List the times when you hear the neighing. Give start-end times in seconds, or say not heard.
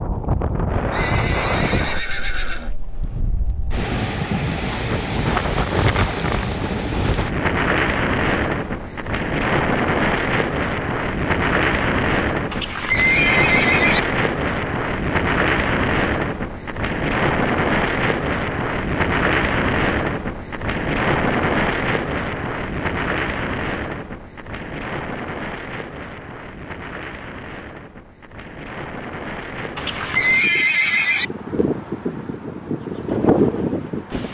0.9-2.8, 12.5-14.0, 29.8-31.2.